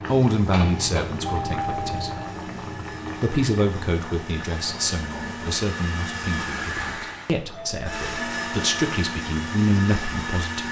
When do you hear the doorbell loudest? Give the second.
2 s.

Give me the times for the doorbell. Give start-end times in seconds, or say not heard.
1.2-2.2, 7.5-8.9.